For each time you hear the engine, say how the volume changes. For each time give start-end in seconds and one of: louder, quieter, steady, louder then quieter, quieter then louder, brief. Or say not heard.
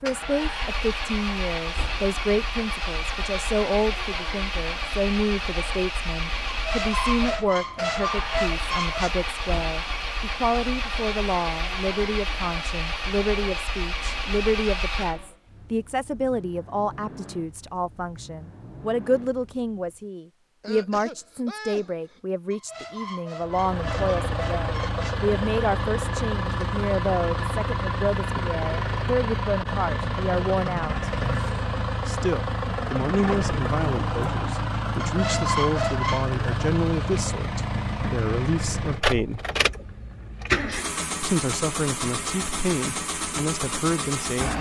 0.0-20.1 quieter
23.4-44.5 steady.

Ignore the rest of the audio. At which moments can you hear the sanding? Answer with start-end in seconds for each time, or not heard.
not heard.